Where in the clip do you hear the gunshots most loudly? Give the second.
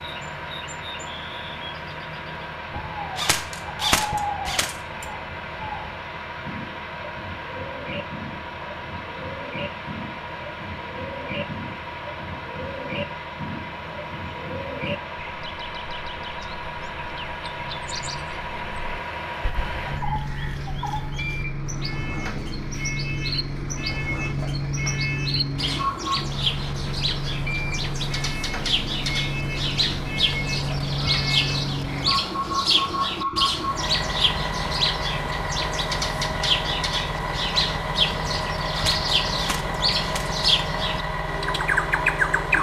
4 s.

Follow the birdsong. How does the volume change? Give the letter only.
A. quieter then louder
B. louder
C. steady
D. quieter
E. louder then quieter
B.